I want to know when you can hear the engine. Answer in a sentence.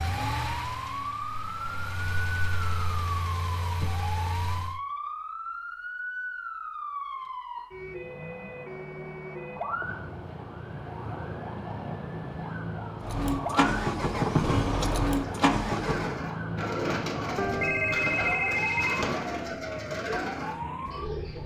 You can hear the engine from 0.0 to 4.8 s and from 13.0 to 16.2 s.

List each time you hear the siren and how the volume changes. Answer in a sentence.
The siren can be heard from 0.0 to 21.4 s, at a steady volume.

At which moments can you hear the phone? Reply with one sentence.
The phone can be heard from 17.4 to 19.1 s.